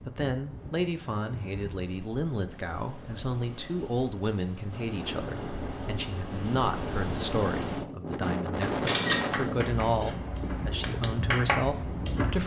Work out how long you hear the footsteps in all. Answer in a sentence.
You can't hear the footsteps here.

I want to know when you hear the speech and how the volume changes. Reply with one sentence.
You can hear the speech from 0.1 to 12.4 s, at a steady volume.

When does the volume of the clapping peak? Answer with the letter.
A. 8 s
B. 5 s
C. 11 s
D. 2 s
C.